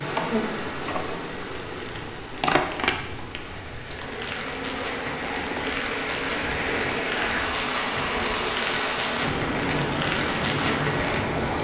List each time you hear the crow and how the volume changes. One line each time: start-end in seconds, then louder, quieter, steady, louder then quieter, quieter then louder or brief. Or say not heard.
not heard.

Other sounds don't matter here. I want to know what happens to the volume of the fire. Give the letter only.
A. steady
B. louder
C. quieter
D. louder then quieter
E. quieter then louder
B.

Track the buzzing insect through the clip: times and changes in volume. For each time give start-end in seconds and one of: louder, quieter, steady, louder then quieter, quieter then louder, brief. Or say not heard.
0.0-11.5 steady.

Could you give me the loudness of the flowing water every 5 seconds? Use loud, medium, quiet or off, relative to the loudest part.
medium, loud, loud.